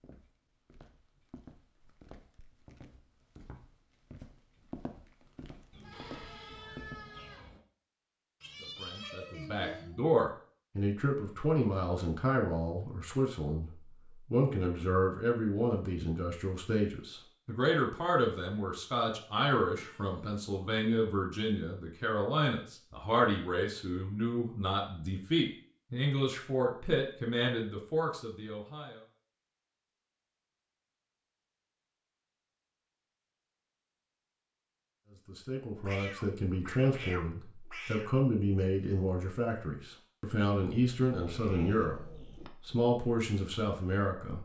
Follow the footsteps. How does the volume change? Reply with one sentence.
The volume of the footsteps goes up.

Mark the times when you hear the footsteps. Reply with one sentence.
You can hear the footsteps from 0.0 to 7.0 s.